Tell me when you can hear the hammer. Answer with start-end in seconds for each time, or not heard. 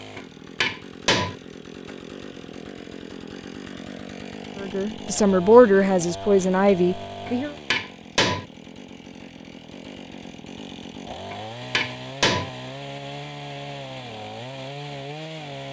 0.1-1.4, 7.2-8.4, 11.3-12.5.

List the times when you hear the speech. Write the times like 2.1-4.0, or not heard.
4.6-7.5.